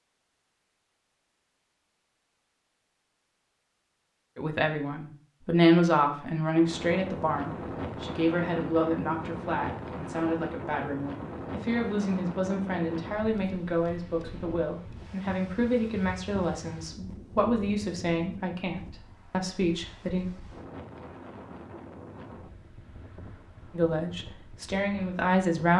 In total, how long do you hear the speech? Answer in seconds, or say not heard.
18 s.